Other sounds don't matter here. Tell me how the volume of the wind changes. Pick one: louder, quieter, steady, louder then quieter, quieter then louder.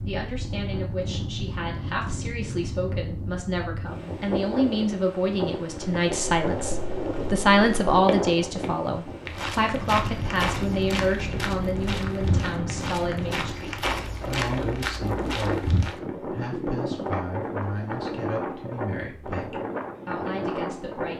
steady.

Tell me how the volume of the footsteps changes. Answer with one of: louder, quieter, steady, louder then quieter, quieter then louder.
steady.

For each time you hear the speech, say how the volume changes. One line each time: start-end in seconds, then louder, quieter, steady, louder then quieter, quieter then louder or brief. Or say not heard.
0.1-21.1 louder then quieter.